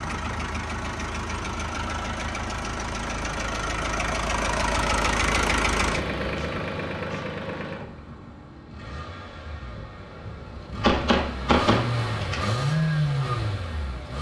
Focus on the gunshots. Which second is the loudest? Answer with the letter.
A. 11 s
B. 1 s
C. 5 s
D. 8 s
A.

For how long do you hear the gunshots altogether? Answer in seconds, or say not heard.
2 s.